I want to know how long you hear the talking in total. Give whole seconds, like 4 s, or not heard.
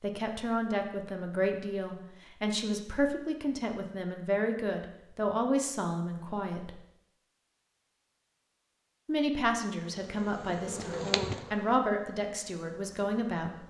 11 s.